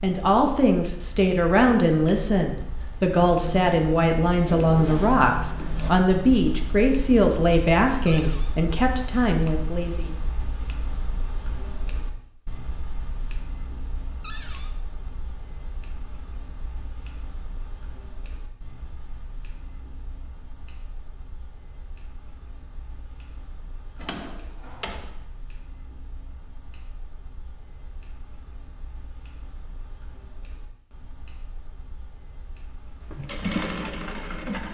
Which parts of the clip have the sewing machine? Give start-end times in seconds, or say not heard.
33.1-34.6.